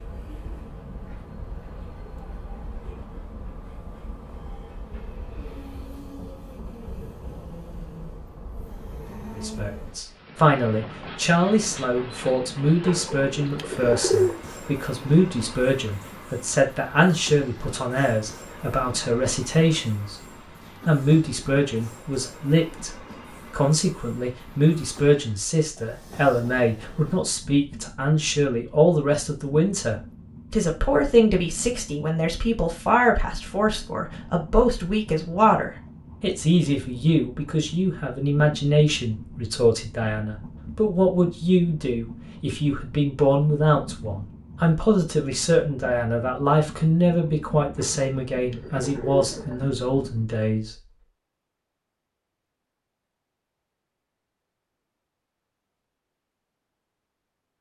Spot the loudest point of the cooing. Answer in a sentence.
The volume of the cooing peaks at 14 seconds.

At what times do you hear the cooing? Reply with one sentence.
You can hear the cooing from 12.8 to 14.4 s and from 47.8 to 49.8 s.